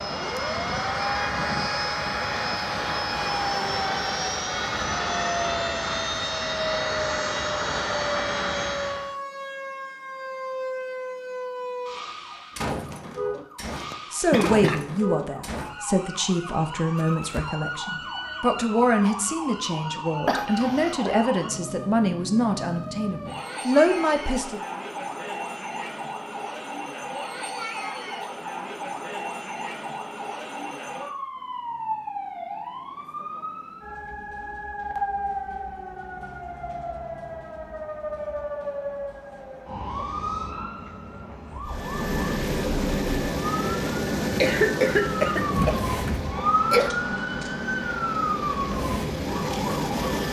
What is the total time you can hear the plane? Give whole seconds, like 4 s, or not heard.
18 s.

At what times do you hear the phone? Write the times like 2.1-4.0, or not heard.
45.4-46.3.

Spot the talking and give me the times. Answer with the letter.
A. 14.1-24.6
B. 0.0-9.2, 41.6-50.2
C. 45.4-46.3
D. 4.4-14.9
A.